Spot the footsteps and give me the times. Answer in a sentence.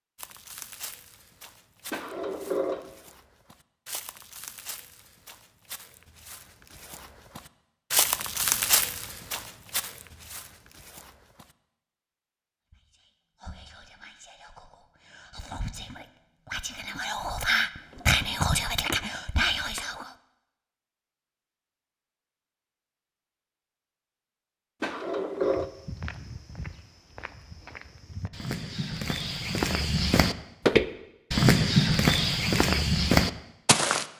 The footsteps can be heard from 0.1 to 11.6 s and from 25.4 to 34.0 s.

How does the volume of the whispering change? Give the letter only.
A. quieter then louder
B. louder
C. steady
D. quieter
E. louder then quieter
B.